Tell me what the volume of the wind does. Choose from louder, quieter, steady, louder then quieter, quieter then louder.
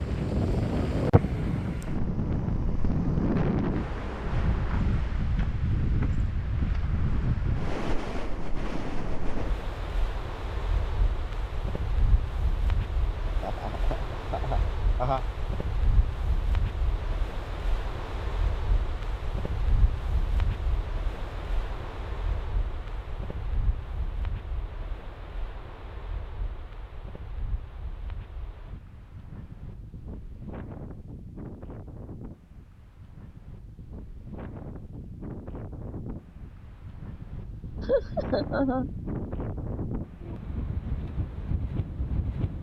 quieter then louder.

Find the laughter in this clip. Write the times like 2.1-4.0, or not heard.
13.4-15.2, 37.8-38.9.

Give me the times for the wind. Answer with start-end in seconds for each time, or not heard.
0.0-42.5.